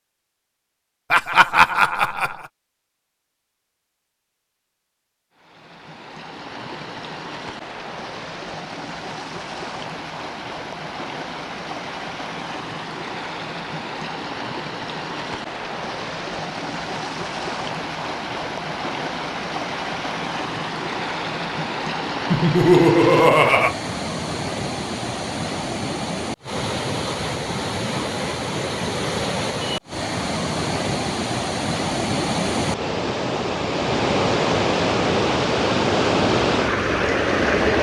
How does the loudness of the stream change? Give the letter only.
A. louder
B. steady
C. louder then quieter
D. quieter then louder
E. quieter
A.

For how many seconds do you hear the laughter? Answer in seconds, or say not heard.
3 s.